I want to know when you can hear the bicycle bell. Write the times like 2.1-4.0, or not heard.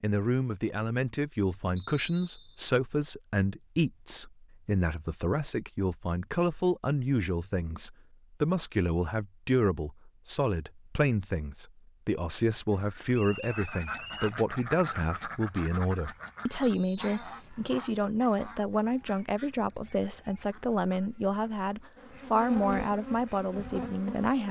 not heard.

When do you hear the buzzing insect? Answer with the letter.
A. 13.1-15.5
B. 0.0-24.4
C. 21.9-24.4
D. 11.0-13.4
C.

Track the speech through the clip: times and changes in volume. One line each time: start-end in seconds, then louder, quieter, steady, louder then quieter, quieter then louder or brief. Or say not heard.
0.0-24.4 steady.